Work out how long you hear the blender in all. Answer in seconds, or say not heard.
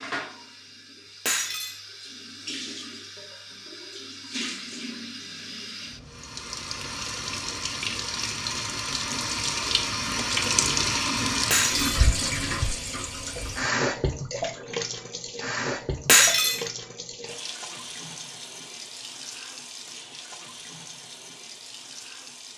not heard.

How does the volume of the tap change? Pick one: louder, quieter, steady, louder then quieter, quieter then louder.
louder then quieter.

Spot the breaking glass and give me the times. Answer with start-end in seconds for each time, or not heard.
1.2-1.8, 11.5-12.1, 16.1-16.6.